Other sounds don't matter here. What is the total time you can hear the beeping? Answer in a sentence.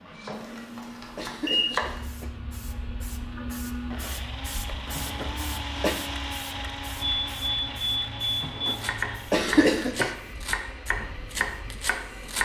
The beeping can be heard for 3 seconds in total.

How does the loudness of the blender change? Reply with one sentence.
The loudness of the blender goes up, then down.